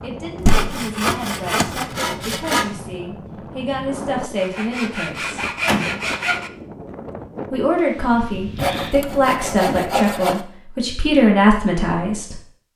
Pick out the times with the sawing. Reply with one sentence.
You can hear the sawing from 0.5 to 2.6 s, from 4.3 to 6.5 s and from 8.6 to 10.4 s.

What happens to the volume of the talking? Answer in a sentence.
The volume of the talking goes up.